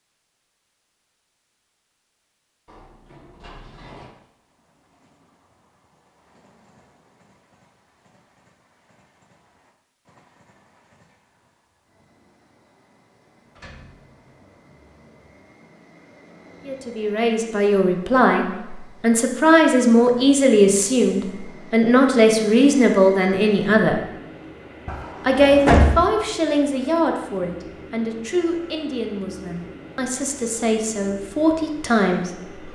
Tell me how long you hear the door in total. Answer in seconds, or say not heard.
3 s.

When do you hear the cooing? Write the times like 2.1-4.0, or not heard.
not heard.